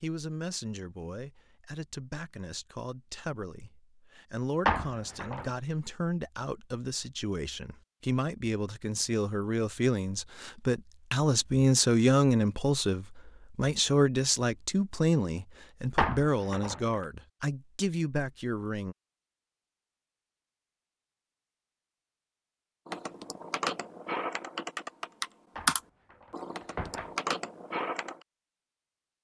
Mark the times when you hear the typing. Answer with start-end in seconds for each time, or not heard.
22.9-28.2.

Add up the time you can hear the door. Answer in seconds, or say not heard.
3 s.